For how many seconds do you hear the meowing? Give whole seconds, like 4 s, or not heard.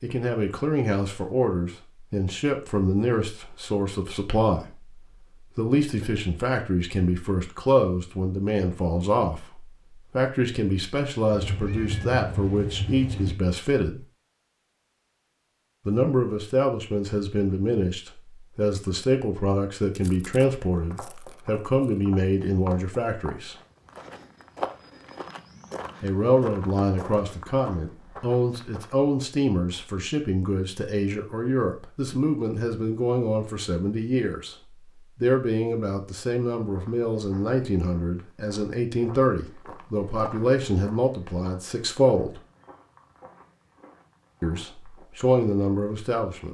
2 s.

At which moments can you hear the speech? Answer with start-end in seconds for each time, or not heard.
0.0-14.1, 15.8-23.6, 26.0-34.5, 35.1-42.4, 44.4-46.5.